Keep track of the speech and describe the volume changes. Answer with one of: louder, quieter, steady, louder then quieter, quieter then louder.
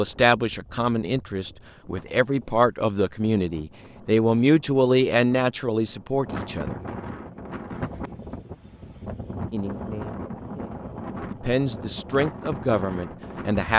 quieter then louder.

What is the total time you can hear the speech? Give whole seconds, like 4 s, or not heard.
11 s.